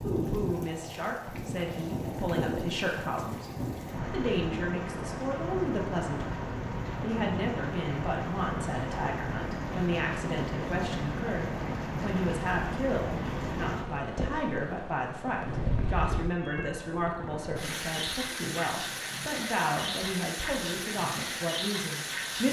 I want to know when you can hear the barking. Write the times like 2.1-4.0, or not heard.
not heard.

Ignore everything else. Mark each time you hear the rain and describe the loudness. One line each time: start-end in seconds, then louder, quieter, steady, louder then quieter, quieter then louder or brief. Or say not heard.
0.0-22.4 steady.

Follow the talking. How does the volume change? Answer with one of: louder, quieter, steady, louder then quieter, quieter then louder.
steady.